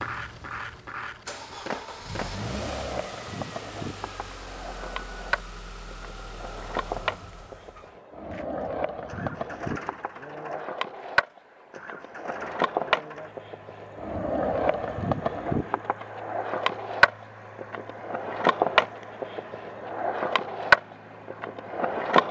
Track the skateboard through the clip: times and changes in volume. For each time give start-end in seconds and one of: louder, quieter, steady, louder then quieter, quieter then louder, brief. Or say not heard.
0.0-22.2 louder.